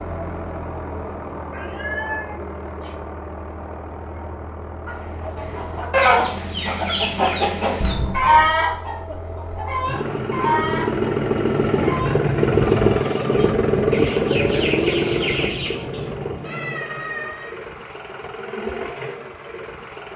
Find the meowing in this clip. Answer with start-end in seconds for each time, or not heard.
1.4-3.0, 7.8-8.6, 16.4-17.6.